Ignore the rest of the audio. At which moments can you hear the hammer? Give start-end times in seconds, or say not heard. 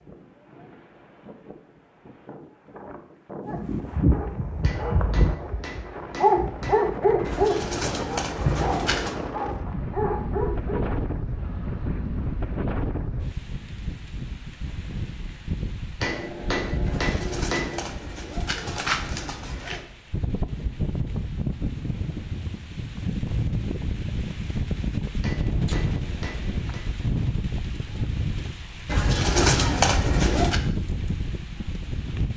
4.6-7.0, 16.0-17.9, 25.2-26.9.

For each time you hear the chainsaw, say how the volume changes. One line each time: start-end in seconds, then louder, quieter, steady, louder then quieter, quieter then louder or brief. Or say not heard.
not heard.